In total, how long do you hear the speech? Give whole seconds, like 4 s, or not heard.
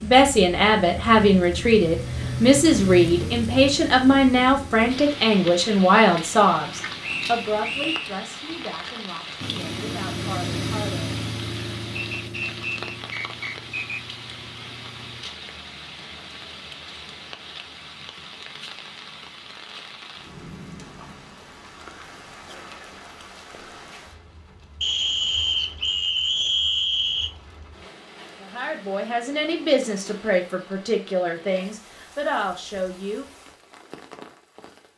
16 s.